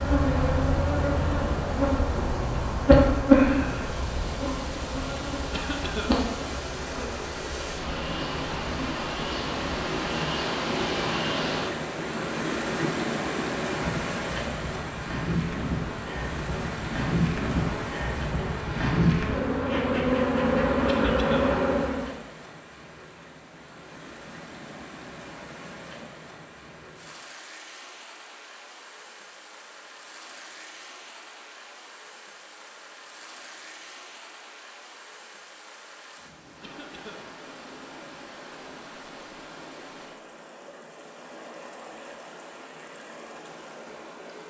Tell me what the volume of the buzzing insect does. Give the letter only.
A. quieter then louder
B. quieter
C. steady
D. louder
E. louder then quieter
A.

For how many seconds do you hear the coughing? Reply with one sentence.
The coughing can be heard for 2 seconds in total.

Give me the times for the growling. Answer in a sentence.
You can't hear the growling here.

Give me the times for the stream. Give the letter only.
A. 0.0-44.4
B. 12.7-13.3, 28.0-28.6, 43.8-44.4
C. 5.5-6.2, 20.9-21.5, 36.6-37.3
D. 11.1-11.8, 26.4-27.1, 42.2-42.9
A.